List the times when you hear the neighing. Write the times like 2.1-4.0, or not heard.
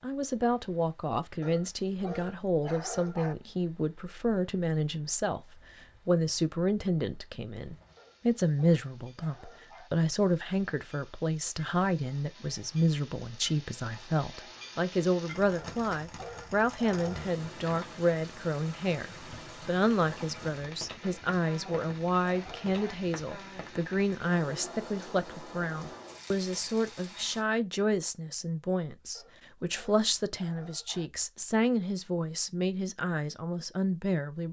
not heard.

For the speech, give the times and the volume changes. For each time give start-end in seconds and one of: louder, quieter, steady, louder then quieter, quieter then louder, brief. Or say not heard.
0.0-34.4 steady.